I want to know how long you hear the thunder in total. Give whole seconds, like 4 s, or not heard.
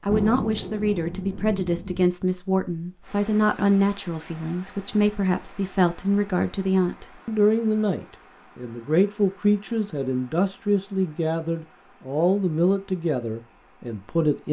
2 s.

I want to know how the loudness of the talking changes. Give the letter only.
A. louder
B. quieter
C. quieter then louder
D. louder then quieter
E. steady
E.